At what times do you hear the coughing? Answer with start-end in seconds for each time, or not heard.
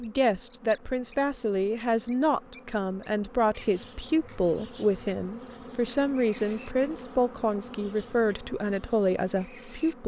not heard.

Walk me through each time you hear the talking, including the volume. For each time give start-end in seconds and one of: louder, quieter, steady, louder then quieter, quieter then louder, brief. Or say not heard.
0.0-10.0 steady.